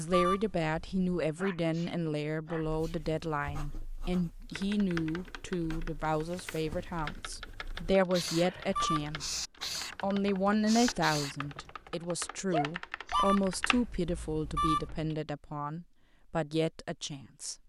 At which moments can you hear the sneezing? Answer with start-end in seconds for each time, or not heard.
1.2-3.0, 8.4-9.1, 12.5-13.3.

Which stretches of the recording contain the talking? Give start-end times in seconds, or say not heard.
0.0-9.4, 10.0-17.6.